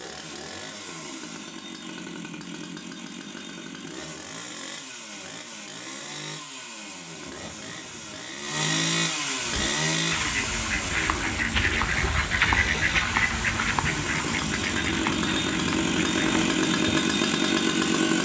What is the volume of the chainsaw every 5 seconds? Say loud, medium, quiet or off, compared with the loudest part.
quiet, medium, medium, loud.